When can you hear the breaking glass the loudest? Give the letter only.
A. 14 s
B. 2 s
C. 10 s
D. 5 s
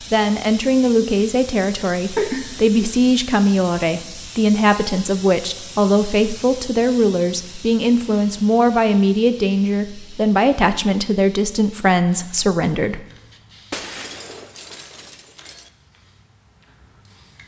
A.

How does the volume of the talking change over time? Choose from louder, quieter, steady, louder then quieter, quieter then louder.
steady.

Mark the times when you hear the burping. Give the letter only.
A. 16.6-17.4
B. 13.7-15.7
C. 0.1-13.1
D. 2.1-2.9
D.